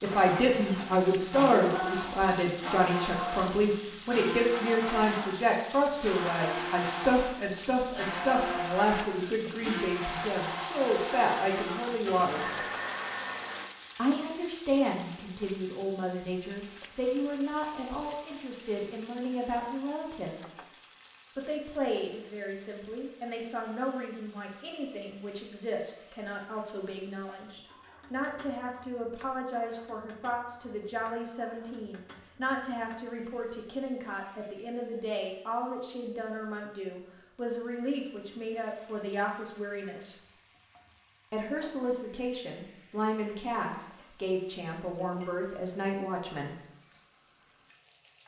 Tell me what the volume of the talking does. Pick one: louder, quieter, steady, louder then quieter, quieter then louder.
quieter.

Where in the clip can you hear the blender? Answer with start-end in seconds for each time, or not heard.
0.0-13.7.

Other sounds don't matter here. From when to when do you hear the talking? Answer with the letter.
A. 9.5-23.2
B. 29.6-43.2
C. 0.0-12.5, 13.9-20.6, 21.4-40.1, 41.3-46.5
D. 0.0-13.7
C.